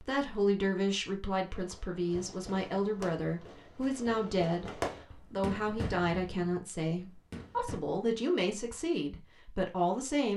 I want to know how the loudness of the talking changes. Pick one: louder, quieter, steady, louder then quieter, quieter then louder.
steady.